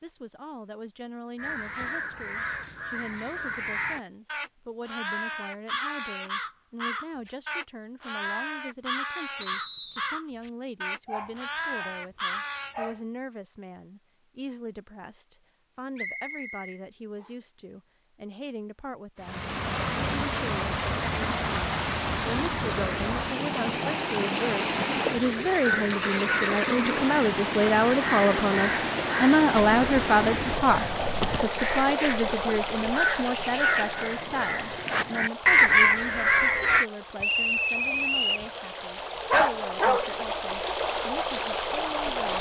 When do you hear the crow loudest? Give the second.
36 s.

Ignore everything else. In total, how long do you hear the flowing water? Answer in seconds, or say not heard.
23 s.